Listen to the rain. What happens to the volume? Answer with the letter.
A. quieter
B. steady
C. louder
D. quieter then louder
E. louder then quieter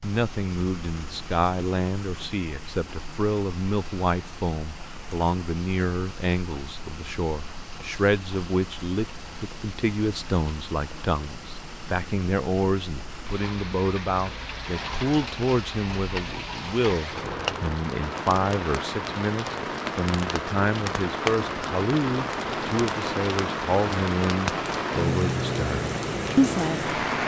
C.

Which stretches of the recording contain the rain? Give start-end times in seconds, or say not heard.
0.0-27.2.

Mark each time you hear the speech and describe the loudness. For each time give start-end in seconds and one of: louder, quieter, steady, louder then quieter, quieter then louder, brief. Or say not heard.
0.0-26.9 steady.